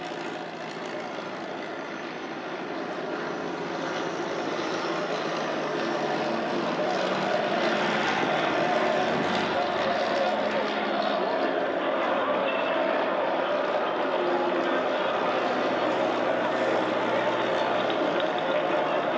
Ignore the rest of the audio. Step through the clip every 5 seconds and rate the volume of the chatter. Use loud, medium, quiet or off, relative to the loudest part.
quiet, loud, loud, loud.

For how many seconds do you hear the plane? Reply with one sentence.
The plane can be heard for 19 seconds in total.